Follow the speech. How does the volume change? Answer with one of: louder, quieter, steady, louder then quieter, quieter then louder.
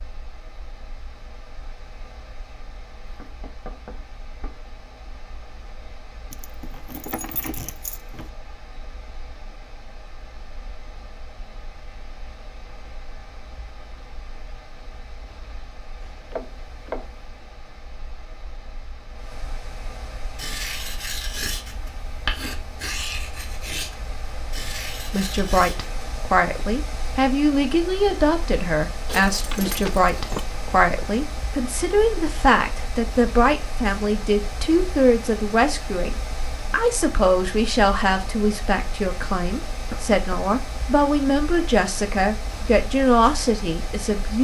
steady.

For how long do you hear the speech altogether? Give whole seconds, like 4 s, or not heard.
19 s.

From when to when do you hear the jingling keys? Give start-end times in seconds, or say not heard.
6.3-8.3, 29.1-30.4.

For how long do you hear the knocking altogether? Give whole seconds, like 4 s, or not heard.
3 s.